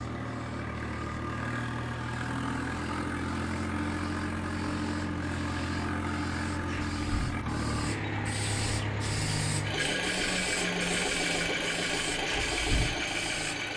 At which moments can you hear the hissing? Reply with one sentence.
The hissing can be heard from 0.0 to 13.7 s.